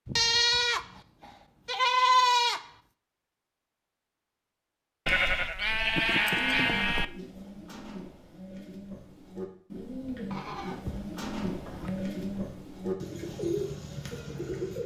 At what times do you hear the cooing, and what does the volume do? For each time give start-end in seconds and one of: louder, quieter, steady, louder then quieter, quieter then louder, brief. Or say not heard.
6.2-14.8 louder.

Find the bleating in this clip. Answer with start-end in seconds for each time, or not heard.
0.1-2.6, 5.0-7.0, 10.3-12.5.